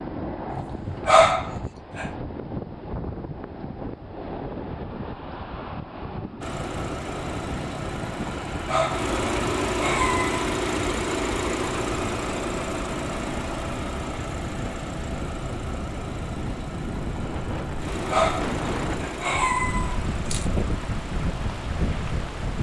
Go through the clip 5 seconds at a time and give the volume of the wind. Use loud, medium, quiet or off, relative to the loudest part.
loud, medium, medium, loud, loud.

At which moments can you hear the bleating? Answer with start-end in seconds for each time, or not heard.
not heard.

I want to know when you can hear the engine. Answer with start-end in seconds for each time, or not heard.
6.4-22.5.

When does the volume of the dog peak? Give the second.
1 s.